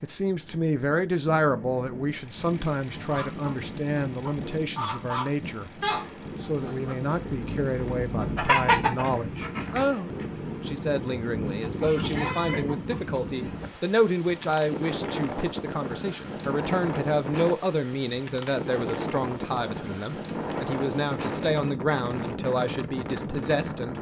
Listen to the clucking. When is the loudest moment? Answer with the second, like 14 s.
9 s.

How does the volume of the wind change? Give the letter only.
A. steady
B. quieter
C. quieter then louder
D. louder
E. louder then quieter
D.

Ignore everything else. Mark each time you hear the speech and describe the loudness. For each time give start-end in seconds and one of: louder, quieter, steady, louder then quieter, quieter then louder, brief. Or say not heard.
0.0-5.7 quieter
6.4-23.9 steady.